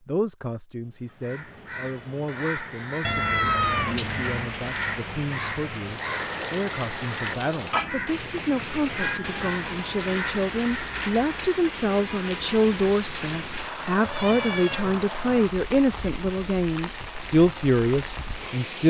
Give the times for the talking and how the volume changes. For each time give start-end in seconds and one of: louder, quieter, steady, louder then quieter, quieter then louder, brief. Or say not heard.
0.1-18.8 louder.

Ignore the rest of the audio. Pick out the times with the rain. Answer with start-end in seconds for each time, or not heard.
3.6-18.8.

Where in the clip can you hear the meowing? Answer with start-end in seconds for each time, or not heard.
3.0-4.5, 8.8-9.4, 14.0-14.9.